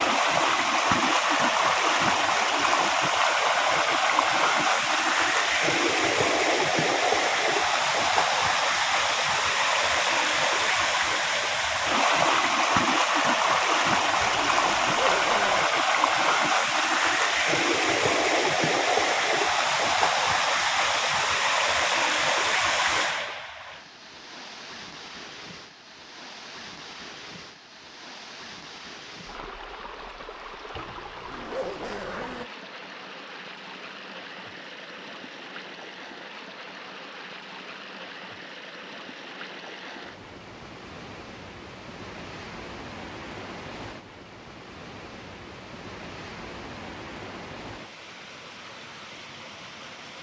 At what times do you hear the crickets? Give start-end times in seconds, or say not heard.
not heard.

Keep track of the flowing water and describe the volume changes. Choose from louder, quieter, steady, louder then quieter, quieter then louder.
quieter.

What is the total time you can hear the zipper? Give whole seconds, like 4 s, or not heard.
3 s.